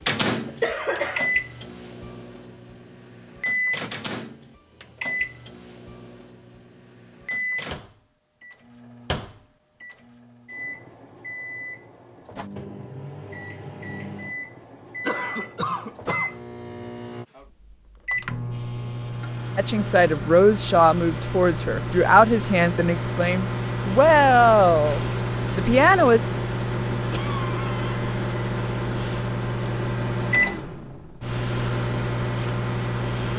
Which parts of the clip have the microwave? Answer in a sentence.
You can hear the microwave from 0.0 to 33.3 s.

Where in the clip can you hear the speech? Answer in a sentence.
The speech can be heard from 19.6 to 26.2 s.